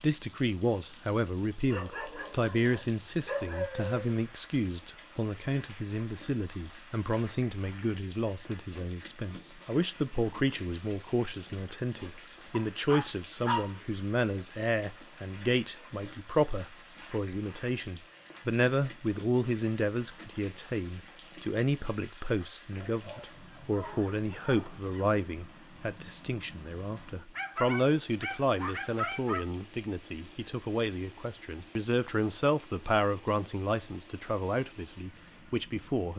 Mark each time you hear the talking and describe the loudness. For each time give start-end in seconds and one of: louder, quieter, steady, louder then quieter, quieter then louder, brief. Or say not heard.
0.0-36.1 steady.